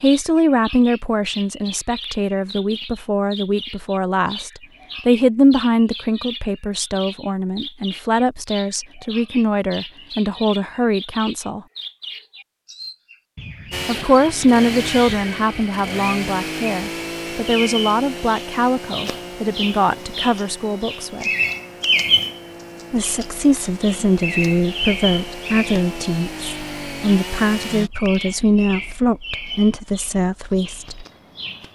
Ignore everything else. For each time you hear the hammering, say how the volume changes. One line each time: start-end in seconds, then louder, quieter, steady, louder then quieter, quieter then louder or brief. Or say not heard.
not heard.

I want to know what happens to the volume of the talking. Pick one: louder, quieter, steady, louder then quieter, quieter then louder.
steady.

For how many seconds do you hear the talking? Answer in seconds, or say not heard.
27 s.